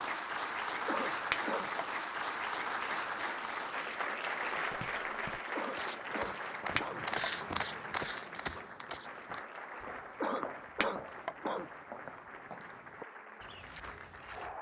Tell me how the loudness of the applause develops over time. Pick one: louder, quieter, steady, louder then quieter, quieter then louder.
quieter.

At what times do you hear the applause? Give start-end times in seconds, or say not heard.
0.0-14.5.